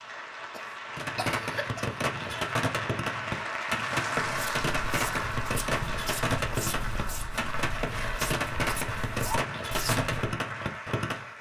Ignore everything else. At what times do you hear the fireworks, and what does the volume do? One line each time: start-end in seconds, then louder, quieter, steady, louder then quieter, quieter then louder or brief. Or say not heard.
0.9-11.3 steady.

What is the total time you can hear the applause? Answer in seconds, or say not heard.
11 s.